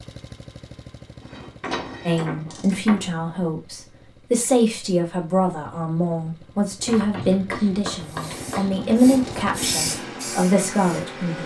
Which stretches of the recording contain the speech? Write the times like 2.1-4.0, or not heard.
2.0-11.4.